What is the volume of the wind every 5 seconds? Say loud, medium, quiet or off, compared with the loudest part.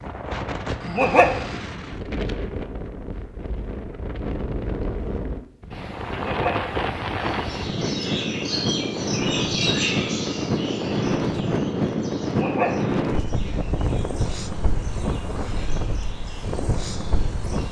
medium, loud, loud, medium.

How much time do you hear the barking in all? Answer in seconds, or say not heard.
2 s.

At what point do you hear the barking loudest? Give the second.
1 s.